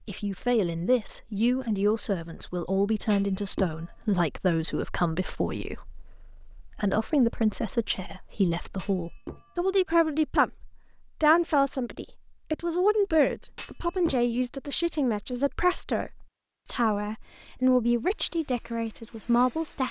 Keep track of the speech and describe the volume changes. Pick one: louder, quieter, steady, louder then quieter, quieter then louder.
steady.